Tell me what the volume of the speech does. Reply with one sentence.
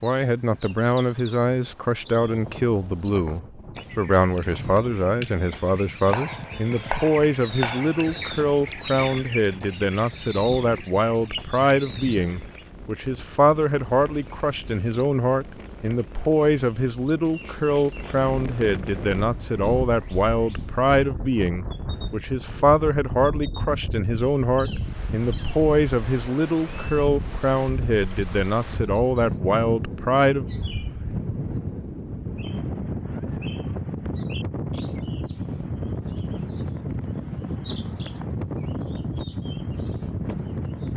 The volume of the speech stays about the same.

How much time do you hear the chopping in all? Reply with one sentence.
The chopping can be heard for 2 seconds in total.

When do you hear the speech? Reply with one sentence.
The speech can be heard from 0.0 to 30.4 s.